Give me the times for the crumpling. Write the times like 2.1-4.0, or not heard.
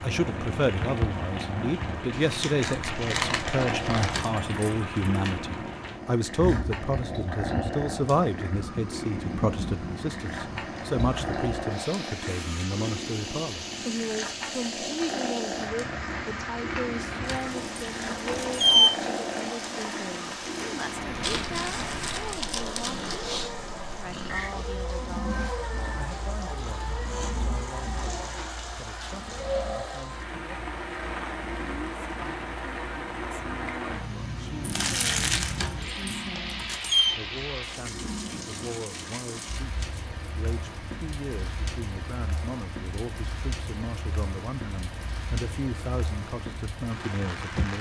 2.1-4.2, 21.2-23.2, 34.6-35.6.